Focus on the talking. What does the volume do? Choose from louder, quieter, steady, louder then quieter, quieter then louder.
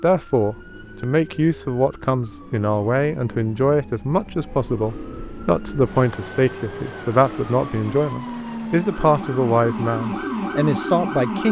steady.